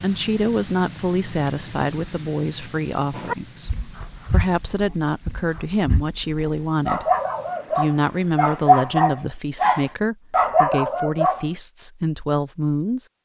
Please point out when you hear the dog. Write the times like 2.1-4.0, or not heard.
3.1-11.4.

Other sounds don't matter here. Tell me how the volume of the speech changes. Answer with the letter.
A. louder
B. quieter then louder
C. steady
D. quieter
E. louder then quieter
C.